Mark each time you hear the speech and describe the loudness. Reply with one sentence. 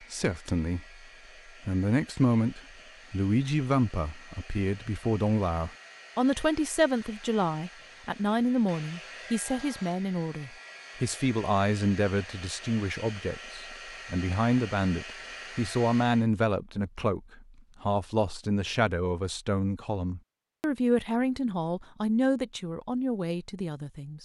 The speech can be heard from 0.1 to 24.2 s, at a steady volume.